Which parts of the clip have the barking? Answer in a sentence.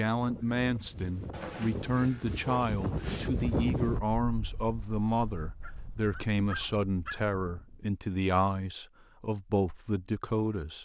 The barking can be heard from 1.3 to 3.3 s and from 5.6 to 7.2 s.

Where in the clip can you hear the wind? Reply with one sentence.
You can hear the wind from 0.0 to 8.0 s.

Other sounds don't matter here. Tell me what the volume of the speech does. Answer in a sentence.
The loudness of the speech stays about the same.